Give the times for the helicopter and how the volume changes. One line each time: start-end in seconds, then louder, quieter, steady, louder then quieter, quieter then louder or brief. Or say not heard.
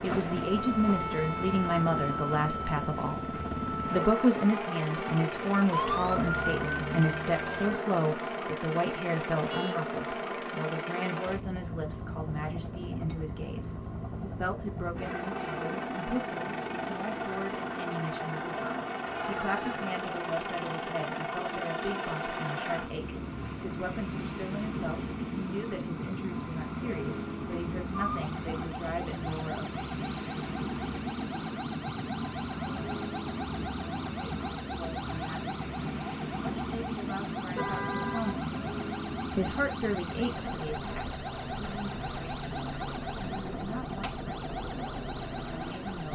0.0-46.1 steady.